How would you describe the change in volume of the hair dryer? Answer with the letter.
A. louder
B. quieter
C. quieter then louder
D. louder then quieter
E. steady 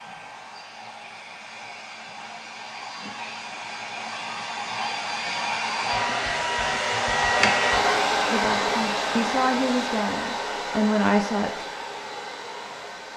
D.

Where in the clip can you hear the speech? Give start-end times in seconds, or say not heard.
8.3-11.7.